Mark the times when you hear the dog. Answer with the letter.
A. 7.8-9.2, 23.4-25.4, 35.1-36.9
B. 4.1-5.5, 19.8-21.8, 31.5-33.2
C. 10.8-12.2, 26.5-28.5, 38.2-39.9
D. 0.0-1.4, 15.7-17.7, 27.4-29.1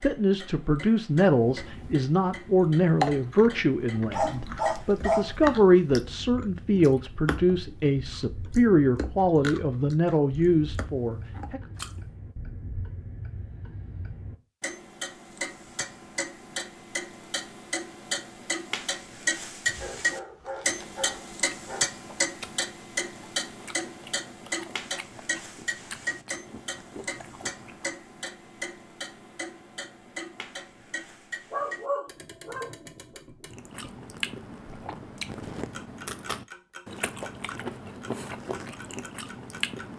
B.